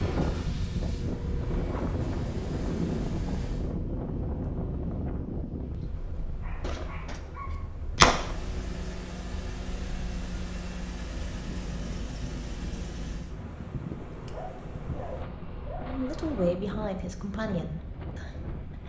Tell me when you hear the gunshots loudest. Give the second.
8 s.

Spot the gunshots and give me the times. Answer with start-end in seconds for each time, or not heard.
6.6-8.3.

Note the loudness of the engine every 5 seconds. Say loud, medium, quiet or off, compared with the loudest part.
medium, loud, loud, off.